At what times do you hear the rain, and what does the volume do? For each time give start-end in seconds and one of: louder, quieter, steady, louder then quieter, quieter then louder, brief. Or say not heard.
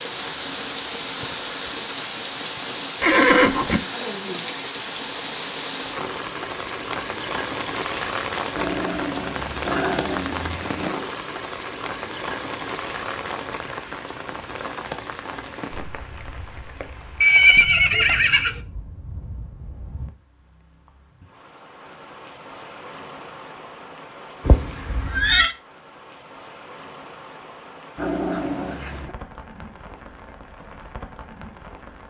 0.0-32.0 quieter.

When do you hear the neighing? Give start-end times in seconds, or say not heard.
3.0-3.8, 17.2-18.6, 24.4-25.6.